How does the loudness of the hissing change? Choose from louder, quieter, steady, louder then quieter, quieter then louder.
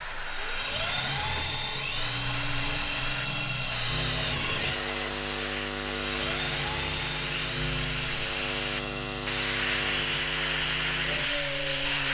louder.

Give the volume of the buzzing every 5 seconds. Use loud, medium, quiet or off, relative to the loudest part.
medium, loud, loud.